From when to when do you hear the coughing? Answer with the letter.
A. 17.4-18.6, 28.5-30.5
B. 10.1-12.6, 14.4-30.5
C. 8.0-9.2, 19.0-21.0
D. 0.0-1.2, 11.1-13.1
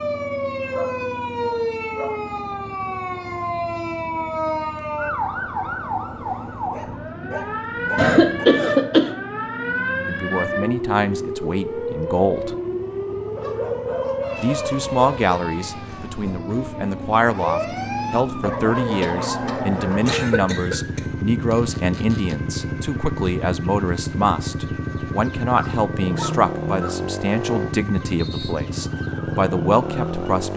C.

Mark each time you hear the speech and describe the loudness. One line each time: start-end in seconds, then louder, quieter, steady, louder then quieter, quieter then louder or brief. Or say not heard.
10.1-12.6 brief
14.4-30.5 steady.